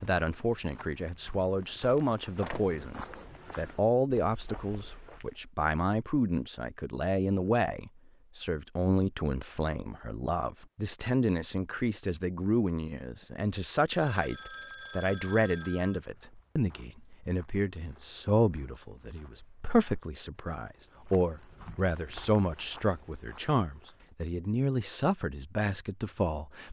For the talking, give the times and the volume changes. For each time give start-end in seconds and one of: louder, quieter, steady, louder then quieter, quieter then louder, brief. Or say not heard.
0.0-26.6 steady.